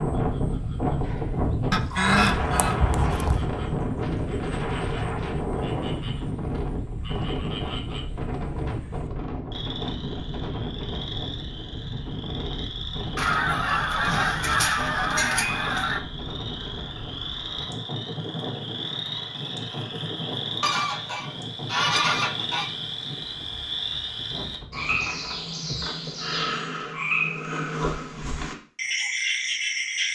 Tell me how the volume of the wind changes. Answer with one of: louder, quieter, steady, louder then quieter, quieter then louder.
quieter.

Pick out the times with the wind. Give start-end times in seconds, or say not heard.
0.0-25.6.